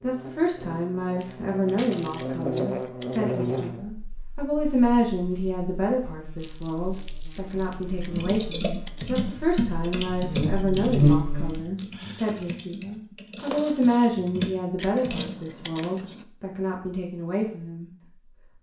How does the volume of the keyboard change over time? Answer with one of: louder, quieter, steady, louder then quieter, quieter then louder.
quieter then louder.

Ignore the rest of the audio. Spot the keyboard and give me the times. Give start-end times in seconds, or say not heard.
7.7-15.8.